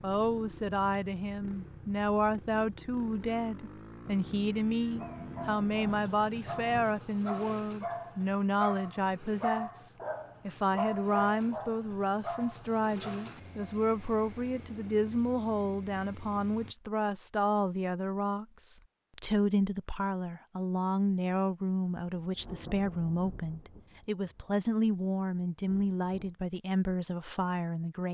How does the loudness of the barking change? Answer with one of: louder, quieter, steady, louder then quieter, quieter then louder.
louder then quieter.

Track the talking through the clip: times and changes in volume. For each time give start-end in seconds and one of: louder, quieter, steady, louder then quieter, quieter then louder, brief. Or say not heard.
0.0-28.0 steady.